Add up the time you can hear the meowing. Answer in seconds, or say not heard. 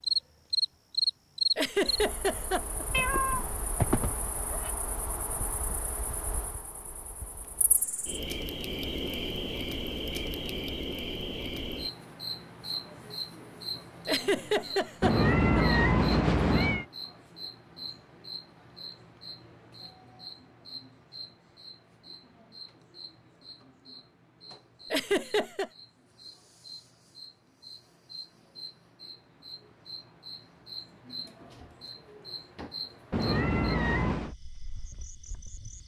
5 s.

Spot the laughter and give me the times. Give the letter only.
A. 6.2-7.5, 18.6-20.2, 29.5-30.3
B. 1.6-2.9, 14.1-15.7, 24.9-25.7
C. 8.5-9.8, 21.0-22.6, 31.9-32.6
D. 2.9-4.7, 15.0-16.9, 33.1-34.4
B.